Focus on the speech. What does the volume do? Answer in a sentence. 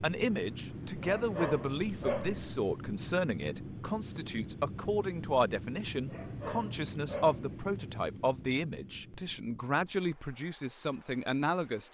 The loudness of the speech stays about the same.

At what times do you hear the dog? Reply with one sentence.
You can hear the dog from 1.0 to 2.6 s and from 6.0 to 7.6 s.